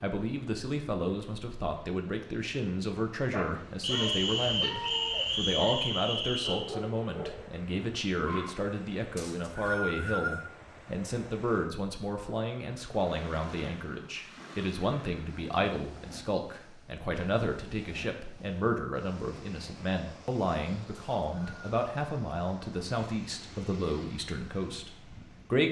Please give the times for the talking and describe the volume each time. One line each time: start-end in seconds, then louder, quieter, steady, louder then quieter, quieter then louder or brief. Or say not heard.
0.0-25.6 steady.